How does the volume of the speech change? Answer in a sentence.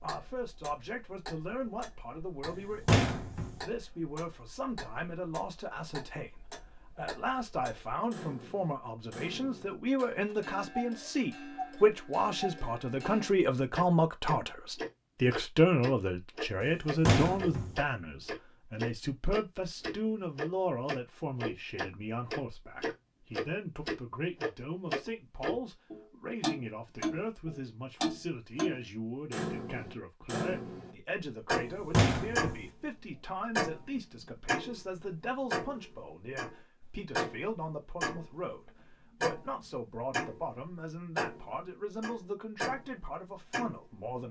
The volume of the speech goes up, then down.